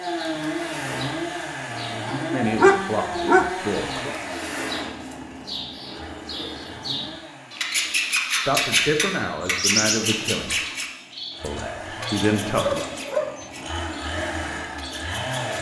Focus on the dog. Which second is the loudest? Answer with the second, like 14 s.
3 s.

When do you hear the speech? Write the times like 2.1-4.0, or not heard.
2.1-4.2, 8.2-10.6, 11.4-12.9.